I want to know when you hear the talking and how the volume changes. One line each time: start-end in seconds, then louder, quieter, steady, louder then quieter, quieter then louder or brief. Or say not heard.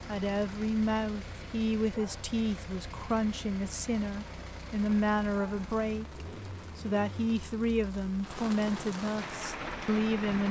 0.1-10.4 steady.